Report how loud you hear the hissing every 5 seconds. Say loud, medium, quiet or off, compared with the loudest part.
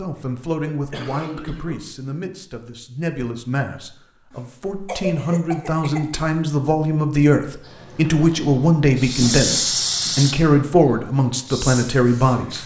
off, loud, medium.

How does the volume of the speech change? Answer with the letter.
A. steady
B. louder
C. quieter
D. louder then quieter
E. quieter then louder
B.